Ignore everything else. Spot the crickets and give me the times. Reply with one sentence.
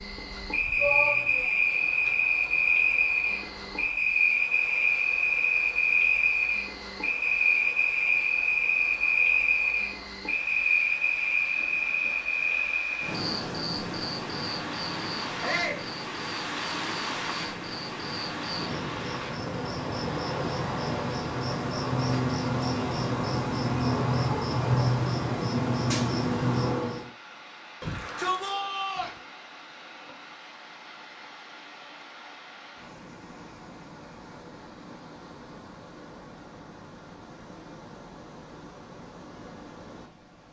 The crickets can be heard from 0.0 to 27.1 s.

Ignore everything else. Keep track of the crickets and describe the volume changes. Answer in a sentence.
The volume of the crickets goes down, then up.